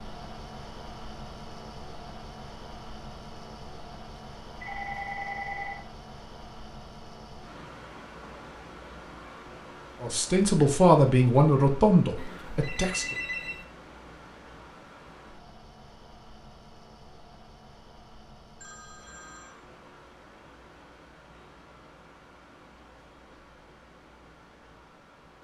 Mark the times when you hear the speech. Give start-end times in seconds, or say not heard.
10.0-13.2.